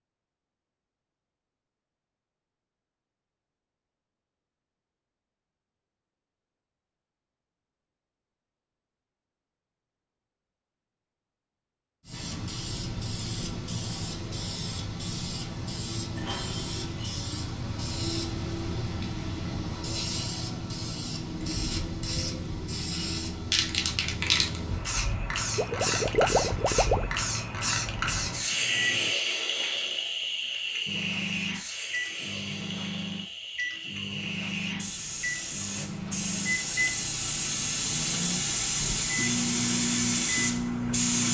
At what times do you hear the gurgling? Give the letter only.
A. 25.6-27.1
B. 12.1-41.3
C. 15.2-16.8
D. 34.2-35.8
A.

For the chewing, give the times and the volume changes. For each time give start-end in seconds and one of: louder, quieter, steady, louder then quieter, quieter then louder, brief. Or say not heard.
not heard.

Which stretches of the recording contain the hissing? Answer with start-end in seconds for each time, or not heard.
12.1-41.3.